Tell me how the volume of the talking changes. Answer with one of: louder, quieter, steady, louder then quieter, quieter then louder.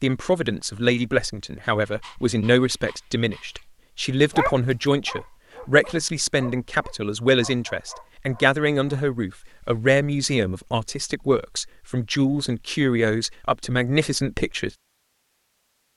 steady.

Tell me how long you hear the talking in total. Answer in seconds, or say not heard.
15 s.